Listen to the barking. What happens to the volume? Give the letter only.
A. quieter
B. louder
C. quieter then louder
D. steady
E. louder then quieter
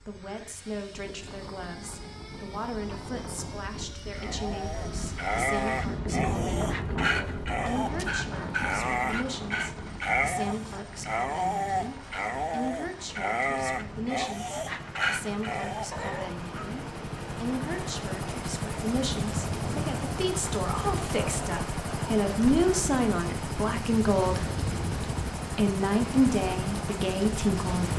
D.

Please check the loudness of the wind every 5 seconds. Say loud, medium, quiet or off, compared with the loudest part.
medium, loud, medium, off, off, off.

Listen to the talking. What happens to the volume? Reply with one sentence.
The loudness of the talking goes up.